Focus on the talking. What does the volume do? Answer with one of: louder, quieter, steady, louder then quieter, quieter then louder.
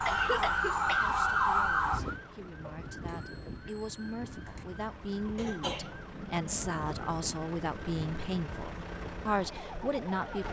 louder.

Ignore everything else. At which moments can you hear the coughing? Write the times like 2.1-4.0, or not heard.
0.1-1.1, 5.3-7.0.